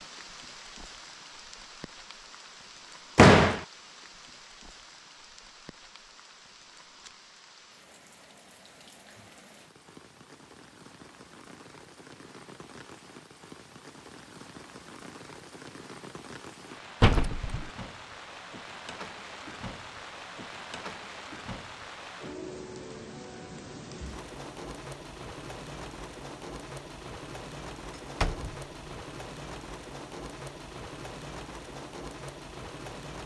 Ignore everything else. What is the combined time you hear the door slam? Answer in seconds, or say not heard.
2 s.